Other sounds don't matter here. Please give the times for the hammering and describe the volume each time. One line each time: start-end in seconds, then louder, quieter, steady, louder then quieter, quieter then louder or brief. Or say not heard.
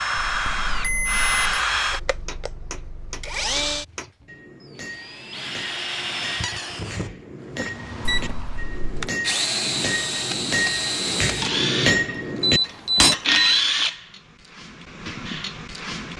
2.2-13.2 louder.